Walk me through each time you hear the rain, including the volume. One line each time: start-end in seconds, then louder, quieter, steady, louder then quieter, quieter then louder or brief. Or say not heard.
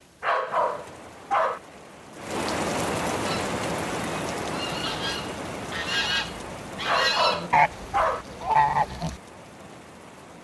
0.0-10.3 louder then quieter.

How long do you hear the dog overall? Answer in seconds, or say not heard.
3 s.